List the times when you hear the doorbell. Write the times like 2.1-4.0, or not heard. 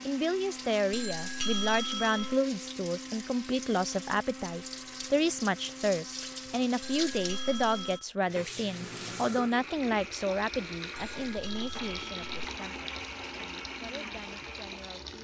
0.9-2.4, 6.8-8.1, 10.9-12.2.